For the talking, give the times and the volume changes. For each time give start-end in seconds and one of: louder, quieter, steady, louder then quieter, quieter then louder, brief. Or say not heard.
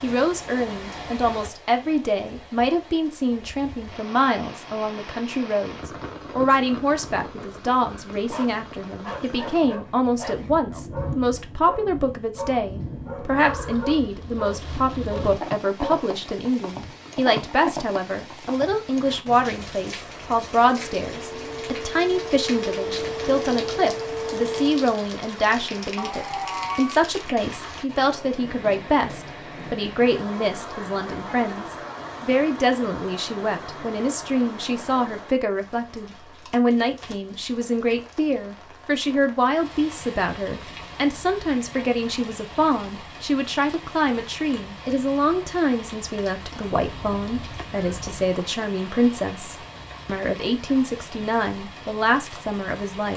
0.0-53.1 steady.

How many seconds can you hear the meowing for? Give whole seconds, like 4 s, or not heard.
3 s.